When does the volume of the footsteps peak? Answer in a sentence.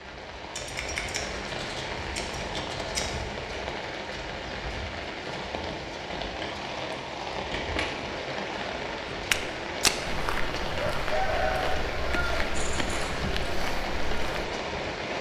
The loudest moment of the footsteps is at 10 seconds.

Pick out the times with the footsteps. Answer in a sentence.
The footsteps can be heard from 9.1 to 14.5 s.